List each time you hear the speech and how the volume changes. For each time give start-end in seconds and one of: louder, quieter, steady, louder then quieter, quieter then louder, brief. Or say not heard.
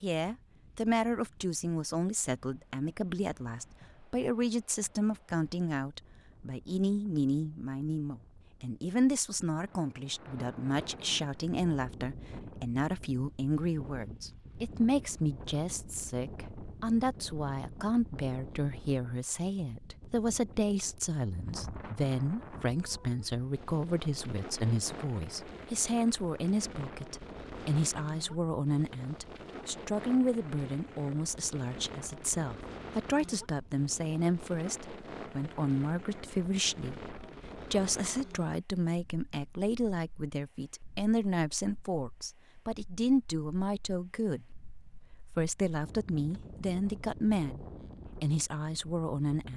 0.0-49.5 steady.